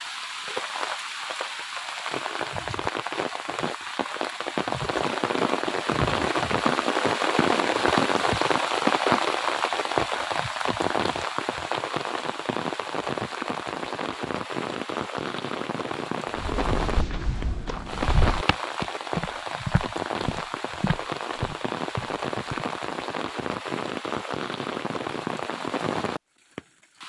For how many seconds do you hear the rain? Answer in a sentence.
The rain can be heard for 27 seconds in total.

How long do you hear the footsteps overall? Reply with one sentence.
The footsteps can be heard for 6 seconds in total.